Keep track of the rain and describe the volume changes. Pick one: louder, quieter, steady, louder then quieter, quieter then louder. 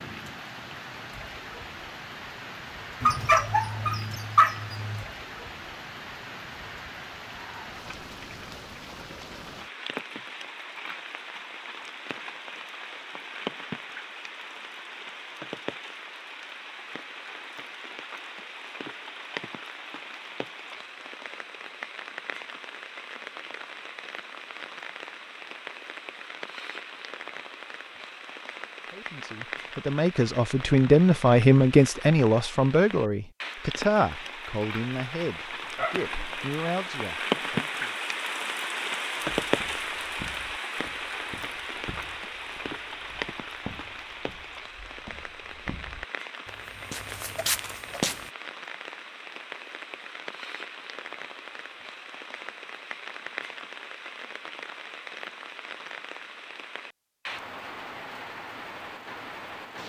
louder then quieter.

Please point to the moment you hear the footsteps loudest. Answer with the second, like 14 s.
48 s.